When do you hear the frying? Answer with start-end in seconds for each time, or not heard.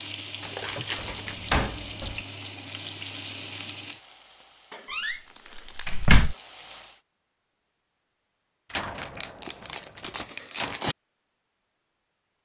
0.0-7.0.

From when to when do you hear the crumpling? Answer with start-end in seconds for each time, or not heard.
0.4-1.4, 4.7-6.0, 8.9-10.9.